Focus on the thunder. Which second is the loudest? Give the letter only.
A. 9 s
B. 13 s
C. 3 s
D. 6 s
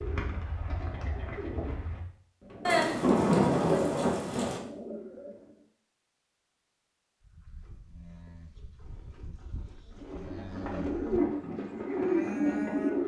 C.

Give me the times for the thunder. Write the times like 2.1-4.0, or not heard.
2.6-4.6.